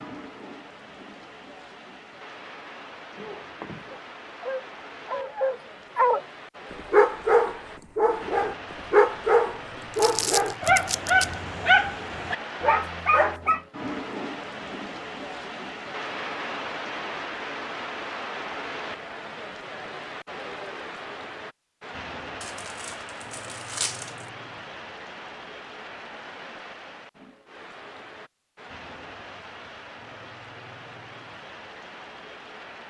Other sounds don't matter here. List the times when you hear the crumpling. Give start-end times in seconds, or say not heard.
9.9-11.3, 22.4-24.3.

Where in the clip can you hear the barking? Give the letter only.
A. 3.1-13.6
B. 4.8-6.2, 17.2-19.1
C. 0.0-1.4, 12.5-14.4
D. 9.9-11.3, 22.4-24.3
A.